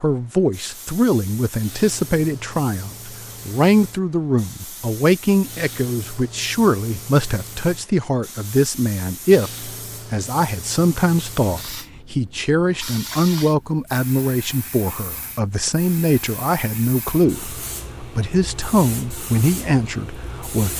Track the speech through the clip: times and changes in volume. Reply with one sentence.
You can hear the speech from 0.0 to 20.7 s, at a steady volume.